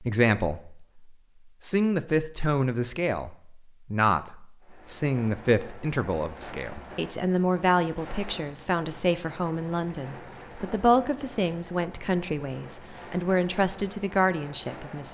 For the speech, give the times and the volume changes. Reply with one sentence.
The speech can be heard from 0.0 to 15.0 s, at a steady volume.